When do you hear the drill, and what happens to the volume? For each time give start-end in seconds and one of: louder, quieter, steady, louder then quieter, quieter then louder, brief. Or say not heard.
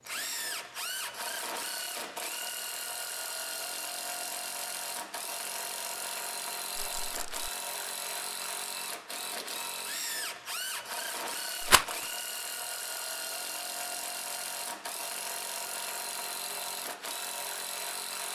0.0-18.3 steady.